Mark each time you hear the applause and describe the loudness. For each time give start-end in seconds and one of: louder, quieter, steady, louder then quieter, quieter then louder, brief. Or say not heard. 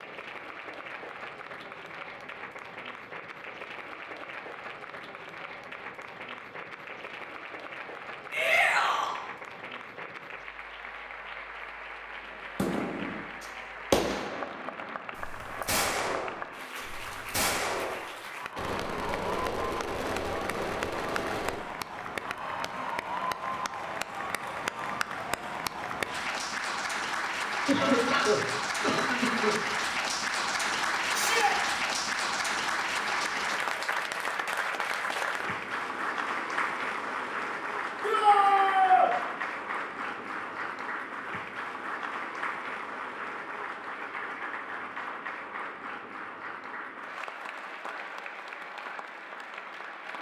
0.0-50.1 louder then quieter.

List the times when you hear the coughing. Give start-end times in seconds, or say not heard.
27.6-29.6.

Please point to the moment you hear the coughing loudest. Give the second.
28 s.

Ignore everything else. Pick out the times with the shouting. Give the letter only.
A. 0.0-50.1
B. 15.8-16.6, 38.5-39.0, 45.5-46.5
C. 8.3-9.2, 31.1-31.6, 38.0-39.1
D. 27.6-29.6
C.